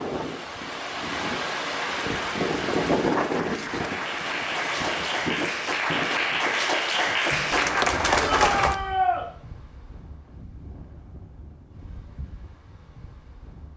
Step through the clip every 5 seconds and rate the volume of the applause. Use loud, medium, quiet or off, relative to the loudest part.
medium, loud, off.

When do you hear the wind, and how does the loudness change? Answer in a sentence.
You can hear the wind from 0.0 to 13.7 s, getting quieter.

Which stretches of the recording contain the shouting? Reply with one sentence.
You can hear the shouting from 8.2 to 9.2 s.